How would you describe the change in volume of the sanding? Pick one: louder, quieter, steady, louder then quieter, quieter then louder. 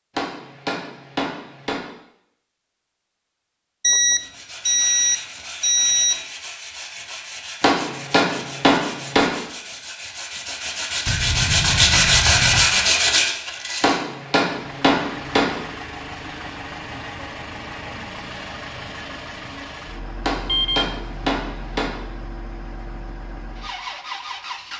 louder.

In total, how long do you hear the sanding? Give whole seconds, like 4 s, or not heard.
10 s.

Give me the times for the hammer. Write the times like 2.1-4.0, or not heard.
0.1-1.8, 7.6-9.2, 13.8-15.4, 20.2-21.9.